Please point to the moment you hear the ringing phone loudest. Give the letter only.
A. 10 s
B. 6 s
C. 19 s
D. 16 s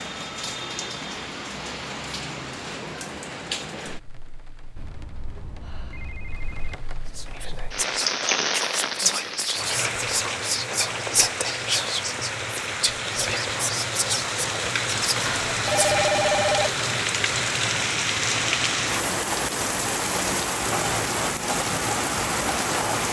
D.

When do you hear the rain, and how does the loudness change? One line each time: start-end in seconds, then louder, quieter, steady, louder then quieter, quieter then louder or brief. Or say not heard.
0.0-23.0 louder.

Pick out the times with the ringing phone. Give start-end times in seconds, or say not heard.
4.8-6.8, 15.2-16.8.